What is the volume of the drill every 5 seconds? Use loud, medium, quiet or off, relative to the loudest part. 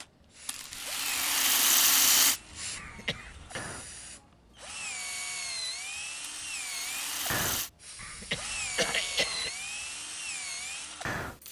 medium, loud, loud.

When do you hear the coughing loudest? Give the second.
9 s.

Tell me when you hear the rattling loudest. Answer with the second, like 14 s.
2 s.